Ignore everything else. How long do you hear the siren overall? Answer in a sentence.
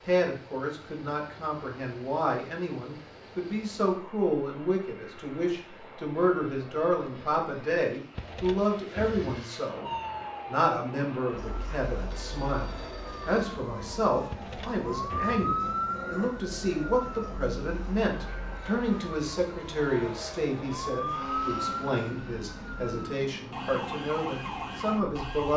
You can hear the siren for 16 seconds altogether.